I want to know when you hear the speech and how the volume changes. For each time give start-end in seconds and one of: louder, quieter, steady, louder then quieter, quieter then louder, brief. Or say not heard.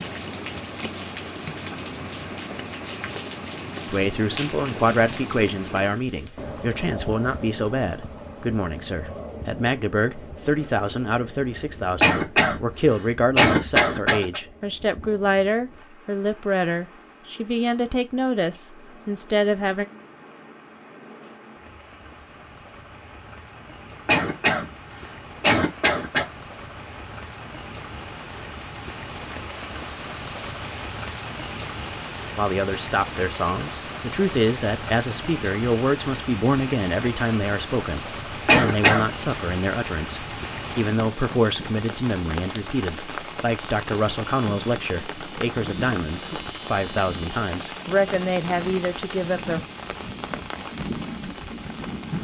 3.9-19.9 steady
32.4-49.6 steady.